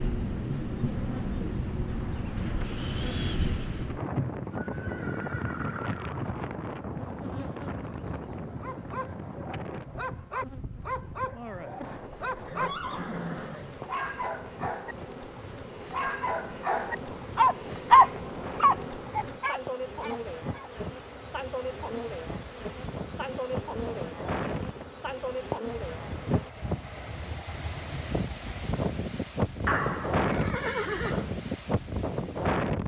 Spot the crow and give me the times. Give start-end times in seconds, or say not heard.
not heard.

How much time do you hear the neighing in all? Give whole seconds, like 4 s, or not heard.
5 s.